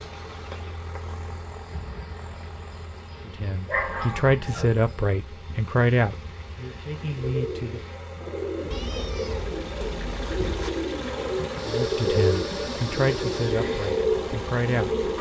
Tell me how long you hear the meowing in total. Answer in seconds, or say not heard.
2 s.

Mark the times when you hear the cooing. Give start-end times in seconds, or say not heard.
7.0-15.1.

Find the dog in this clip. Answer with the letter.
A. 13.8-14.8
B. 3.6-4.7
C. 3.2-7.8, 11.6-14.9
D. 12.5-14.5
B.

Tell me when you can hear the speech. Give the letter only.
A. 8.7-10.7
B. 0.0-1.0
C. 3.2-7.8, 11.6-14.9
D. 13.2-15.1
C.